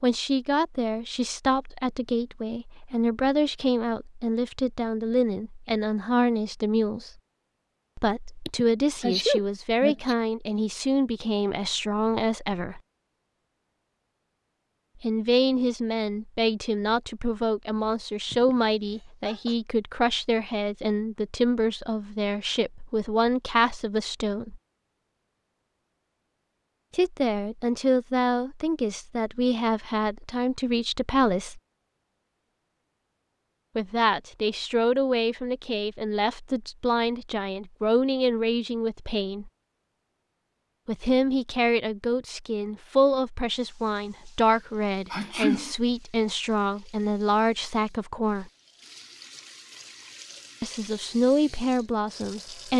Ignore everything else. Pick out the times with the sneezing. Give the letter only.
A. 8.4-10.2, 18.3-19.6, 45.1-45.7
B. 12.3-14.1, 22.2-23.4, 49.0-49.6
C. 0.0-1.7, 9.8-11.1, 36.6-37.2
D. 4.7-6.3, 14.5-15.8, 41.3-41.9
A.